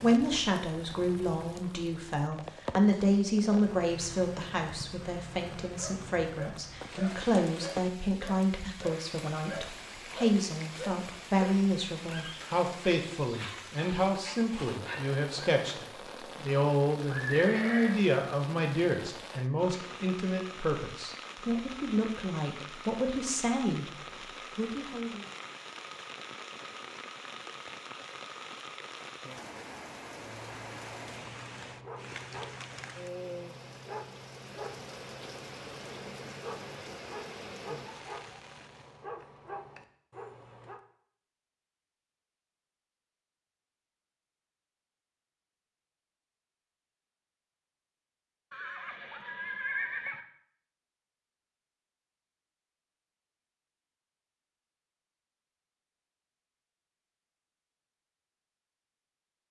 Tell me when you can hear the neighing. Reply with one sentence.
The neighing can be heard from 17.1 to 18.0 s and from 48.5 to 50.2 s.